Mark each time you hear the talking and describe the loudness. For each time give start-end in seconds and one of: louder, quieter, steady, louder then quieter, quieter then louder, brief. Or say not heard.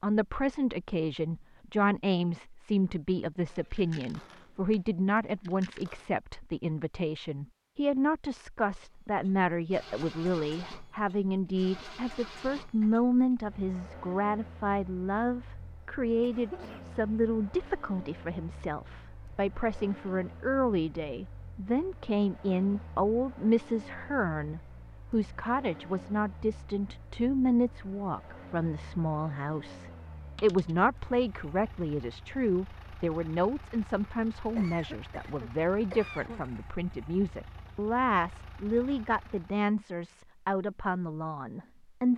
0.0-42.1 steady.